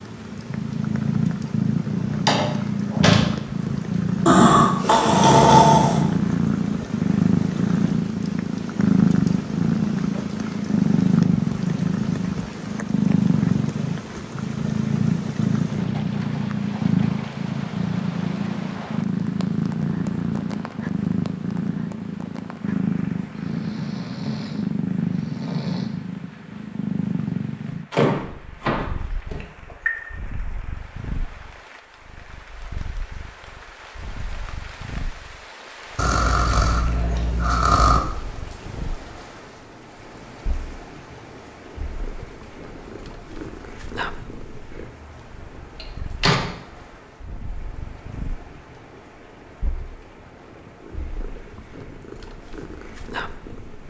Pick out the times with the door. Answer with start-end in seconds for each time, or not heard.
2.1-3.4, 27.9-29.9, 45.8-46.5.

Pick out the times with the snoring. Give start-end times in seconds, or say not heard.
4.2-6.0, 23.4-25.9, 36.0-38.0.